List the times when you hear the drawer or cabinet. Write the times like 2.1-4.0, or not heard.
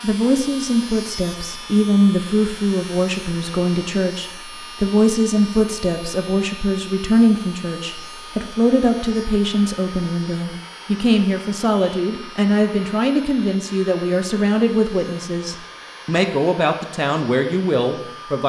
not heard.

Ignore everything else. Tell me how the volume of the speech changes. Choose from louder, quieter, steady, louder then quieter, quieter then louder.
steady.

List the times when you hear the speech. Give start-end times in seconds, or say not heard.
0.0-18.4.